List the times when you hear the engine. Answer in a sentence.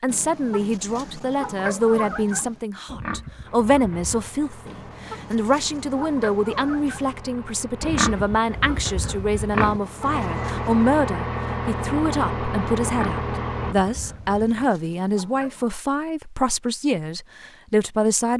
The engine can be heard from 3.5 to 13.8 s.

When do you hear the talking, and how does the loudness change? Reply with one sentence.
You can hear the talking from 0.0 to 18.3 s, at a steady volume.